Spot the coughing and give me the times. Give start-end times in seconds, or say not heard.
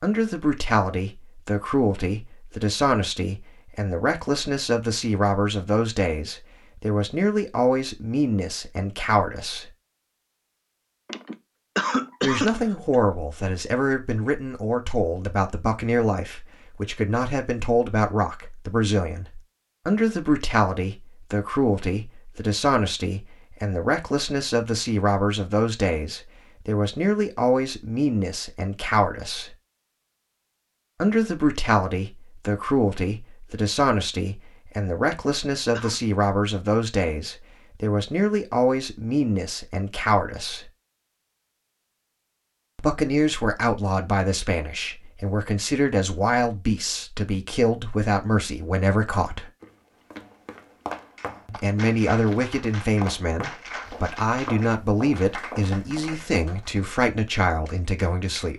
11.1-12.9, 35.0-36.0.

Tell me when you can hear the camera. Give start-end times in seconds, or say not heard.
not heard.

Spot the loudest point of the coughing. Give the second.
12 s.